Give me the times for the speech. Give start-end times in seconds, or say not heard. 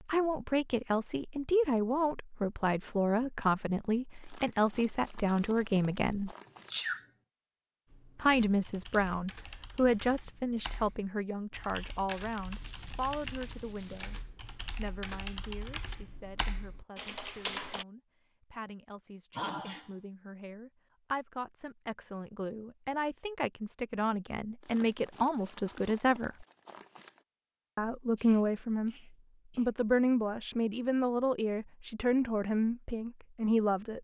0.1-6.3, 8.2-14.2, 14.8-26.4, 27.8-28.9, 29.6-33.9.